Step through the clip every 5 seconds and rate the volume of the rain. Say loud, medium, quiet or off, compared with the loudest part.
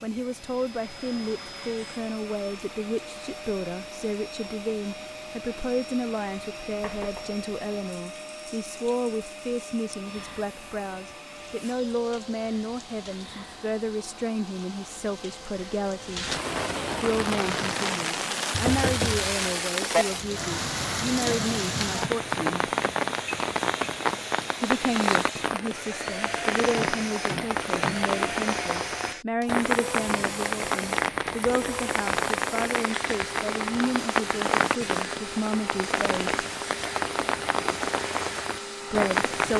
quiet, quiet, quiet, loud, loud, loud, loud, loud.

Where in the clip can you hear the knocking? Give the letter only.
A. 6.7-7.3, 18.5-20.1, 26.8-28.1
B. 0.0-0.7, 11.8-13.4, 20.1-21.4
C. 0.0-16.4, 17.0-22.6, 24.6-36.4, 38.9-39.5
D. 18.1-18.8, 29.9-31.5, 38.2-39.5
A.